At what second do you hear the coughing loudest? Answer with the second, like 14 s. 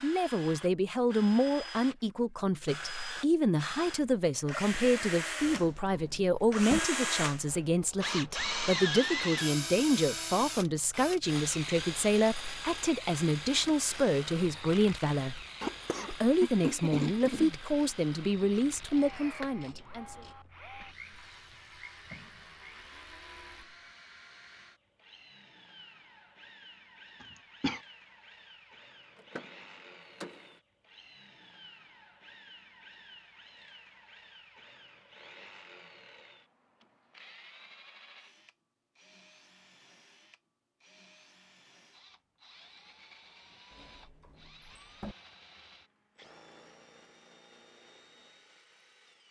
17 s.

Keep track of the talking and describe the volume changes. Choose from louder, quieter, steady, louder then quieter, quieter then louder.
steady.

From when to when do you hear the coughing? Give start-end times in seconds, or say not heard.
15.6-17.6, 27.2-27.8.